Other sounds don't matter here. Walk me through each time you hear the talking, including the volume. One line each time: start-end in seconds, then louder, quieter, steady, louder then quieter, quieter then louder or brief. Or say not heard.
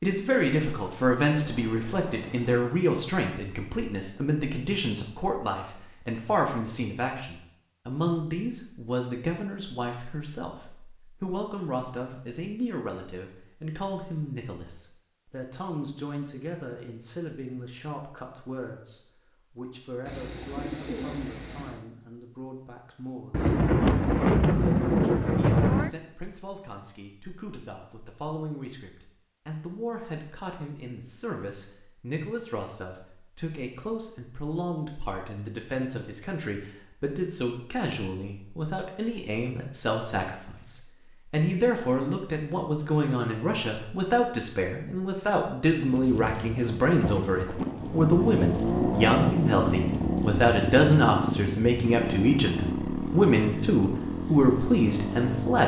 0.0-55.6 quieter then louder.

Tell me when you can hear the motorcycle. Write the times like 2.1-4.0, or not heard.
47.7-55.6.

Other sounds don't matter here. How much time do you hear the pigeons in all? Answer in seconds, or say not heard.
2 s.